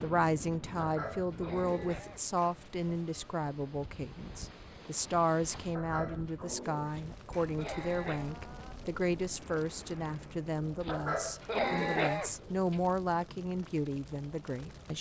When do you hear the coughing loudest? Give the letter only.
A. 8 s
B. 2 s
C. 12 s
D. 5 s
C.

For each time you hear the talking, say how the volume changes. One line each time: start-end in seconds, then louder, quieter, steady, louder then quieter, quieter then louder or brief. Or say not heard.
0.0-14.9 steady.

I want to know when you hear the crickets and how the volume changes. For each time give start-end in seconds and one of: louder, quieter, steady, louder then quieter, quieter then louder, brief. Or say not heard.
not heard.